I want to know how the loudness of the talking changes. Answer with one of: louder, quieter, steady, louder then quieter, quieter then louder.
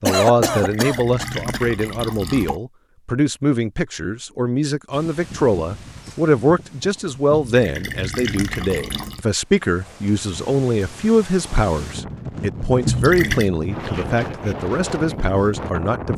steady.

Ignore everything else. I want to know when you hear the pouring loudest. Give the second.
13 s.